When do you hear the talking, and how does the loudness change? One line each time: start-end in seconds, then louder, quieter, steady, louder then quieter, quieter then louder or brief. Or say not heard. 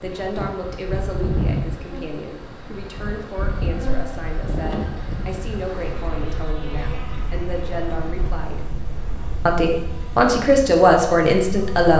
0.0-8.7 steady
9.4-11.9 brief.